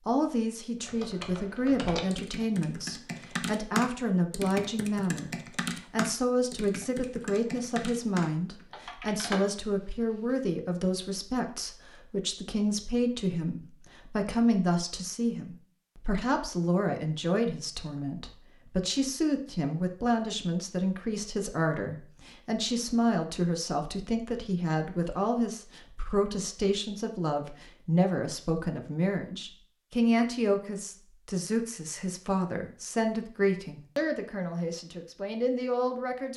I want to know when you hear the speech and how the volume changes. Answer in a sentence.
You can hear the speech from 0.1 to 36.3 s, at a steady volume.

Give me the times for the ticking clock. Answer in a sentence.
You can't hear the ticking clock here.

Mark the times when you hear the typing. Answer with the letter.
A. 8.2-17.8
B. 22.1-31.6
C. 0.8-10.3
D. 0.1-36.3
C.